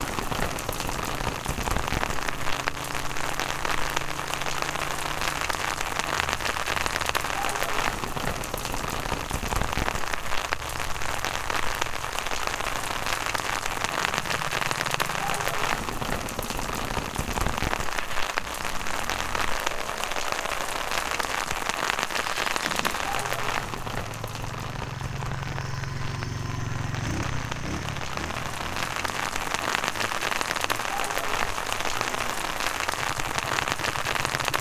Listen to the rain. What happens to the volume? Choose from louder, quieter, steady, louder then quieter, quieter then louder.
steady.